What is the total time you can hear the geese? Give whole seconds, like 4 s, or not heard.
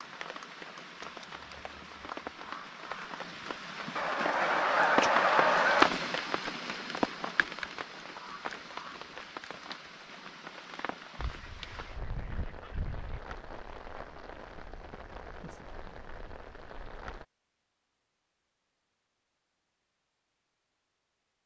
4 s.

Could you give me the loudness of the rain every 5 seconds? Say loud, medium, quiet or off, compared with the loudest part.
medium, loud, quiet, quiet, off.